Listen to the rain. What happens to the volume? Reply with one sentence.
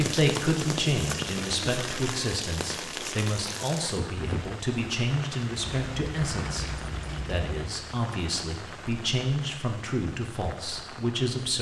The volume of the rain goes down.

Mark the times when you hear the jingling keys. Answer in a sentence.
The jingling keys can be heard from 5.7 to 7.7 s.